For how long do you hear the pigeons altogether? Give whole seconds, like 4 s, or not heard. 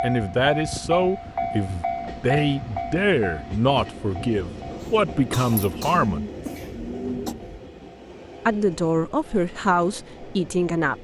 2 s.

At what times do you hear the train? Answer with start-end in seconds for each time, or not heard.
0.0-10.9.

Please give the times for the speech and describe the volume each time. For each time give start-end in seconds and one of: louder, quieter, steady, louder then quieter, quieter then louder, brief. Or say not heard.
0.0-6.2 steady
8.4-10.9 brief.